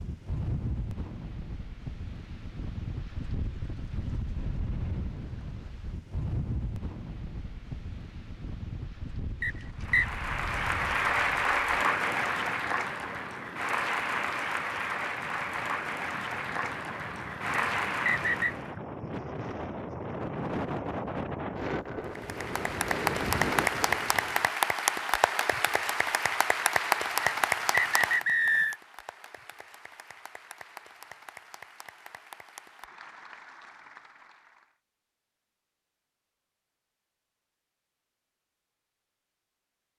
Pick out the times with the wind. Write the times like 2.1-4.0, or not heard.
0.0-24.5.